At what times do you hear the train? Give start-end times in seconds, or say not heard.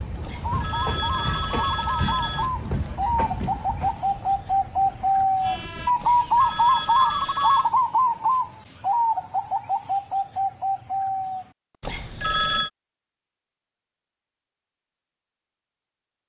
0.0-5.9.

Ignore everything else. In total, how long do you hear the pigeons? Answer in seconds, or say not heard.
11 s.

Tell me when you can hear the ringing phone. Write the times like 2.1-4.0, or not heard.
0.2-2.5, 6.0-7.7, 11.8-12.7.